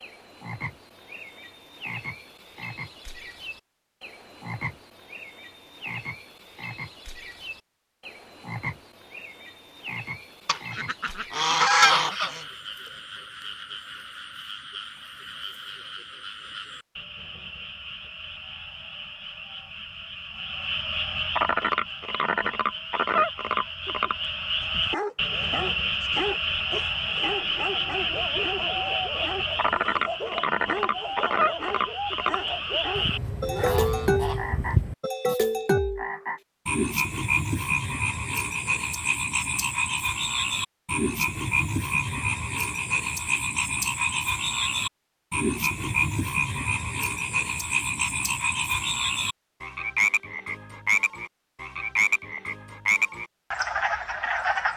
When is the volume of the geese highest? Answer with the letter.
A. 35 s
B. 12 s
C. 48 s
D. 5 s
B.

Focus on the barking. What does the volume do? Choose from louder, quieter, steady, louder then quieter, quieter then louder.
steady.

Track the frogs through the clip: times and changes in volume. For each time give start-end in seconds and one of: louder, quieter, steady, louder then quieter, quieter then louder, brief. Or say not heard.
0.0-54.7 louder.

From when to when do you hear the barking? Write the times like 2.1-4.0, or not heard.
24.6-33.8.